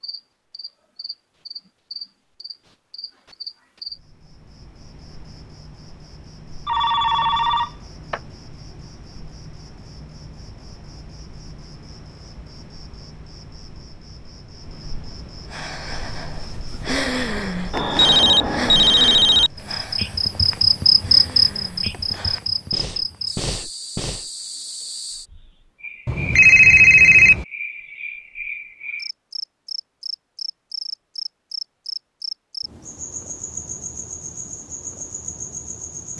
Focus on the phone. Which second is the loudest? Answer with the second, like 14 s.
27 s.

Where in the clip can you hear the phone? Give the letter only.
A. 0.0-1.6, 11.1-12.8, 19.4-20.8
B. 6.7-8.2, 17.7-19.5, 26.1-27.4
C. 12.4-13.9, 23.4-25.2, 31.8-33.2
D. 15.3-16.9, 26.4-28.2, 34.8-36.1
B.